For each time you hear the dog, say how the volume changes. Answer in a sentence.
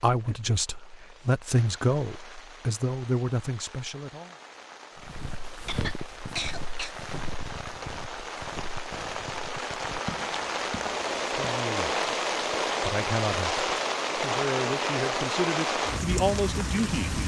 You can't hear the dog here.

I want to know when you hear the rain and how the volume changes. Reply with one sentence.
You can hear the rain from 0.0 to 17.2 s, getting louder.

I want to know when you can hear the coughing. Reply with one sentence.
You can hear the coughing from 5.7 to 7.0 s.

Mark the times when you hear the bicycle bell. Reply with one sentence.
The bicycle bell can't be heard in this clip.